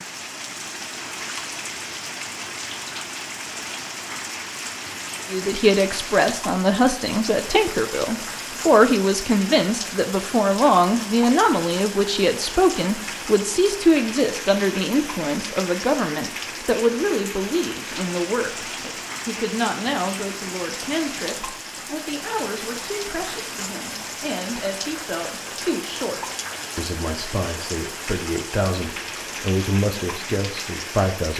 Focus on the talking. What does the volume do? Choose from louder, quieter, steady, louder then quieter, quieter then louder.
quieter.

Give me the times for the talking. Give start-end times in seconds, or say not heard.
5.3-31.3.